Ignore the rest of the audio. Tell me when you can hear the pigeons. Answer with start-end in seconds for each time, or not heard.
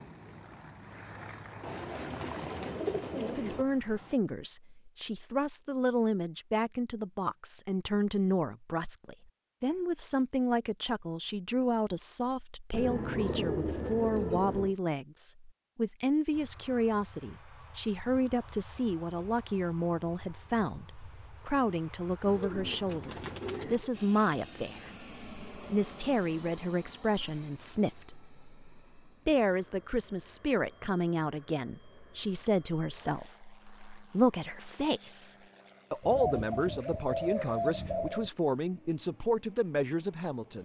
1.6-3.6, 12.7-14.8, 22.2-23.9, 36.0-38.3.